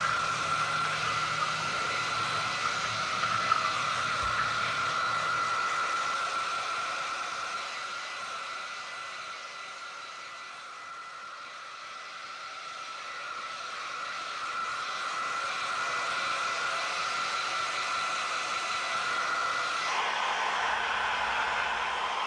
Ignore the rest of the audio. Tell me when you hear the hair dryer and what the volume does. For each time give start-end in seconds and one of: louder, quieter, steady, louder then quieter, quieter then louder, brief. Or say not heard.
0.0-22.2 quieter then louder.